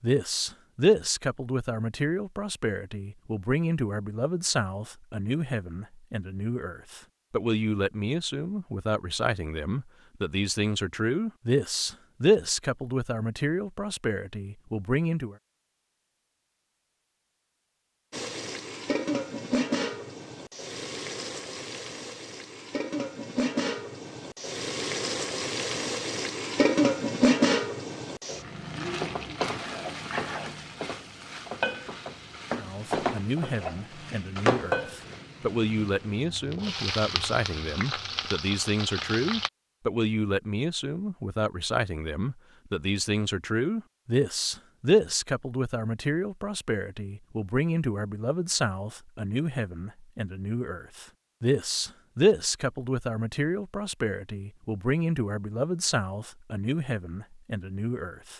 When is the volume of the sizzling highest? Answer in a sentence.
The loudest moment of the sizzling is at 27 seconds.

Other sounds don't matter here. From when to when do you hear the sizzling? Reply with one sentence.
The sizzling can be heard from 18.1 to 39.5 s.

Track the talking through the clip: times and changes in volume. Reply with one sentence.
The talking can be heard from 0.0 to 15.3 s, at a steady volume; and from 32.5 to 58.3 s, at a steady volume.